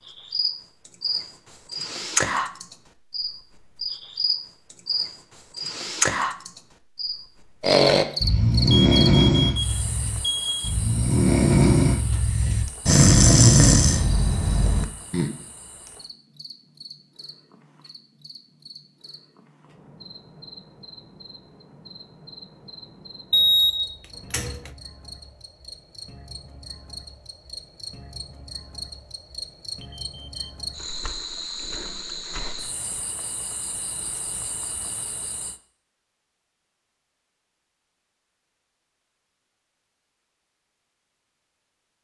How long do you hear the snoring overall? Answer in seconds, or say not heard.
8 s.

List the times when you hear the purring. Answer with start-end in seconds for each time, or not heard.
not heard.